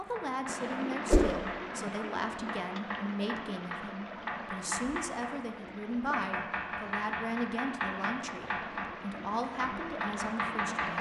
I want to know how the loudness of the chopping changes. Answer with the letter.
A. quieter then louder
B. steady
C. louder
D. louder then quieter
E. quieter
C.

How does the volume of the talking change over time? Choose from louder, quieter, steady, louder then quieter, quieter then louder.
steady.